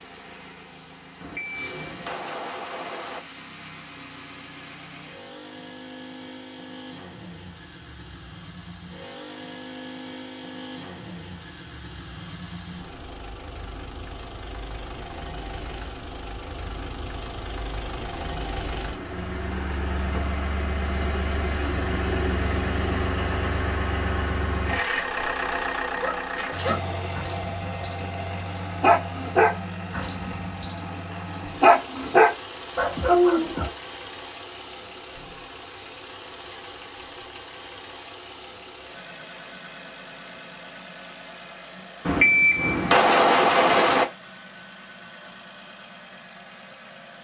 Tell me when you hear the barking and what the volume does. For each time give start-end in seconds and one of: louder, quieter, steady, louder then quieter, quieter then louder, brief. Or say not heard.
25.9-33.7 louder.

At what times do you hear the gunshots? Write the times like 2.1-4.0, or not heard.
1.2-3.2, 42.0-44.0.